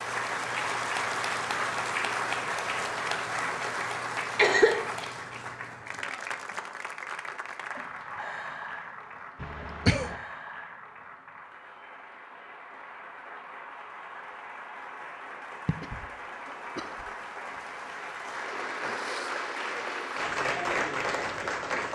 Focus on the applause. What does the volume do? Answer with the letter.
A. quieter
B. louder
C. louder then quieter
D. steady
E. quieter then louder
E.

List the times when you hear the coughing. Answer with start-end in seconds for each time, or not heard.
4.3-4.9, 9.4-10.2, 15.7-17.1.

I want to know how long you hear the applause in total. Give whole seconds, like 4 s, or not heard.
22 s.